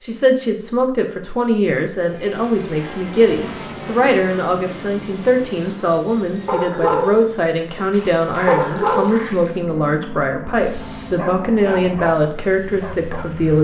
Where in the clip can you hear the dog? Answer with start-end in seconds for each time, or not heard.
6.5-13.3.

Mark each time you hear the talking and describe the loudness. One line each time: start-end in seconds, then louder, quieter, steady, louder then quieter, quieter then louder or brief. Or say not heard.
0.0-13.5 steady.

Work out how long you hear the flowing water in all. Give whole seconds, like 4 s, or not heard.
not heard.